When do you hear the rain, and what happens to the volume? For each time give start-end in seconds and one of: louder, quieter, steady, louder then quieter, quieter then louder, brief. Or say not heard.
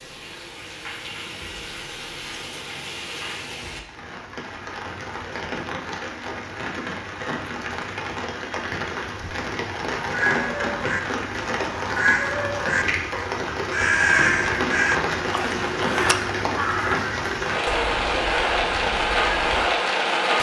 0.0-20.3 louder.